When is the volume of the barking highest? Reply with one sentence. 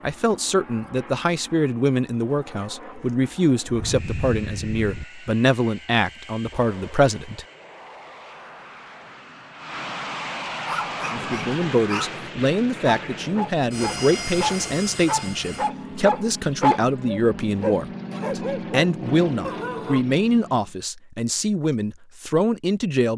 The loudest moment of the barking is at 17 seconds.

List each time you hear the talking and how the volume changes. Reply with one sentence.
The talking can be heard from 0.0 to 7.5 s, at a steady volume; and from 11.1 to 23.1 s, at a steady volume.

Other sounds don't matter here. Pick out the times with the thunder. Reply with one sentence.
The thunder can be heard from 3.6 to 5.0 s.